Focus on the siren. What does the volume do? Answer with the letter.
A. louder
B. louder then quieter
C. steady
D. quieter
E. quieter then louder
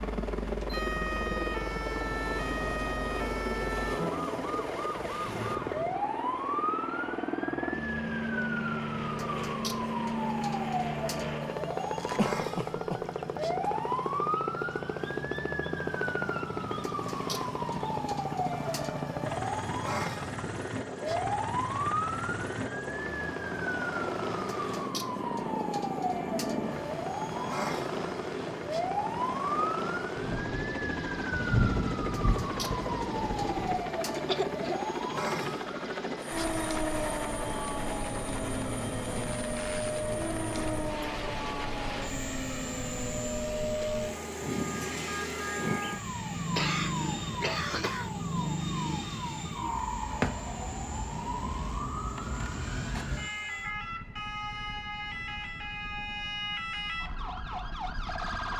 C.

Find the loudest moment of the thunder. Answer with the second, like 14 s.
32 s.